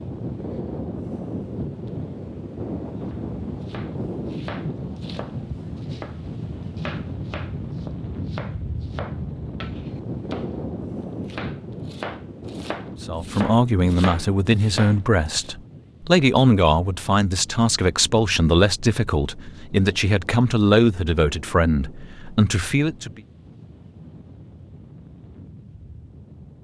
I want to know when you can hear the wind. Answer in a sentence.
You can hear the wind from 0.0 to 26.5 s.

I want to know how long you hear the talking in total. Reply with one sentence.
The talking can be heard for 10 seconds in total.